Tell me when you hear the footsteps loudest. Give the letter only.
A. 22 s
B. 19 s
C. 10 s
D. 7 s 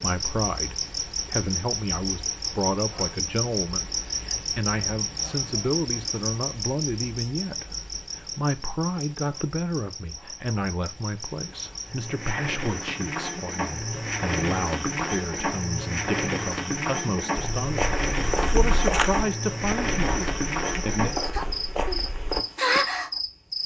B.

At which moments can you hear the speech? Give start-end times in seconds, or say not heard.
0.0-21.1.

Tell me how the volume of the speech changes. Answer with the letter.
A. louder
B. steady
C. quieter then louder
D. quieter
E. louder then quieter
B.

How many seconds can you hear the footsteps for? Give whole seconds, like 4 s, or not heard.
5 s.